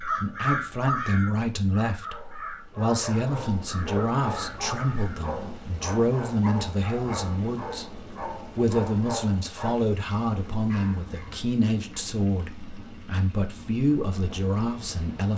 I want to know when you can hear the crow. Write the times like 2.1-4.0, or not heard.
0.0-5.2.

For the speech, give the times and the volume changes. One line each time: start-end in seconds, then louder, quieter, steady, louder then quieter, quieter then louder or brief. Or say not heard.
0.0-15.3 steady.